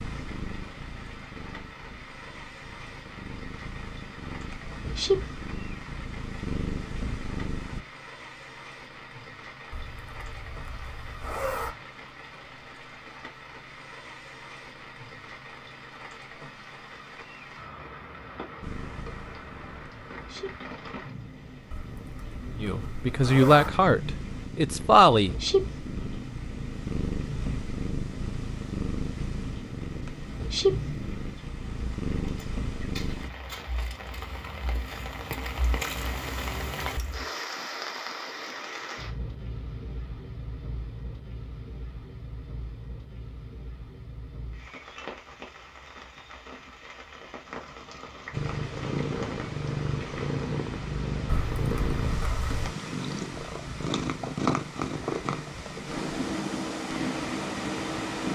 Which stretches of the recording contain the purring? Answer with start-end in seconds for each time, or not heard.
0.0-7.8, 18.6-33.3, 48.3-58.3.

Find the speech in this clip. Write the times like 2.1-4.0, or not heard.
22.6-25.4.